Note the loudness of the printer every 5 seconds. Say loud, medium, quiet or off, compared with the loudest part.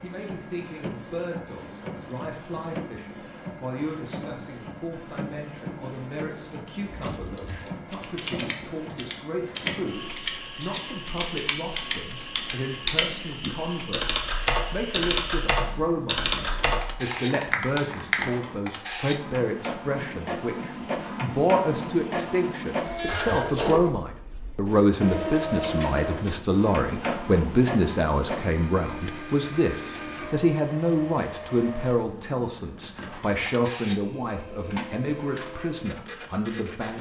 medium, medium, medium, medium, loud, loud, medium, medium.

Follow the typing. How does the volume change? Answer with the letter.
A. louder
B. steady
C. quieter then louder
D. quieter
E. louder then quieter
A.